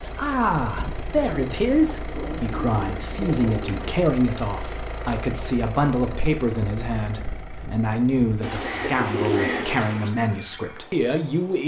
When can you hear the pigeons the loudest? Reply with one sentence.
The volume of the pigeons peaks at 9 seconds.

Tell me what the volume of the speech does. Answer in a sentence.
The loudness of the speech stays about the same.